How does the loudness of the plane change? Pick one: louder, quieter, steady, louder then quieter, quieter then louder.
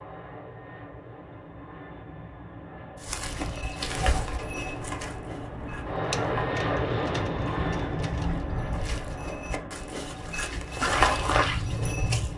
louder then quieter.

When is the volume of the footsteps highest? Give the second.
11 s.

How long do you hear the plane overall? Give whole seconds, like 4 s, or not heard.
12 s.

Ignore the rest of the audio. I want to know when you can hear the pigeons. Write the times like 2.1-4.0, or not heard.
6.0-8.4.